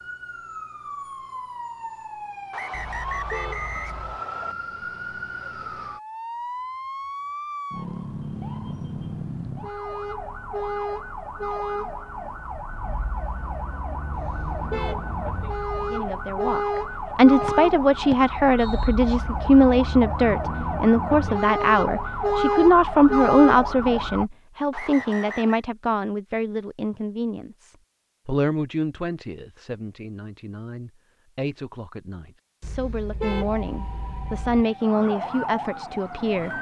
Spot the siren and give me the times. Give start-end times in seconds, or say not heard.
0.0-24.2, 33.3-36.5.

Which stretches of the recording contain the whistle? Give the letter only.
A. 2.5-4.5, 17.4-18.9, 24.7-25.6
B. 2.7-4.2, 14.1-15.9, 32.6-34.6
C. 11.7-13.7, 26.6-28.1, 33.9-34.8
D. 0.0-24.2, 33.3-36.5
A.